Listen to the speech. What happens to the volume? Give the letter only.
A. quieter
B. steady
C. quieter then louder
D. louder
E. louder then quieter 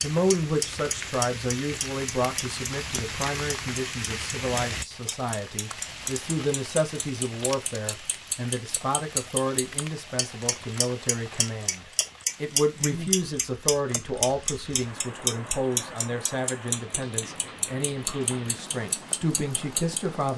B.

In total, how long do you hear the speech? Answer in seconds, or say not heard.
20 s.